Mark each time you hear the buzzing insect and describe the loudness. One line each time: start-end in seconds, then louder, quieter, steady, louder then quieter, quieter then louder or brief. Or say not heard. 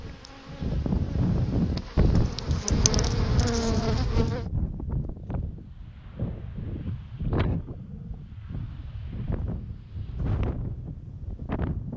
0.0-4.5 louder.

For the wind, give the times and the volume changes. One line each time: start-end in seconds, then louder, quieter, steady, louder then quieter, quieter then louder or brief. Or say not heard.
0.0-11.9 quieter.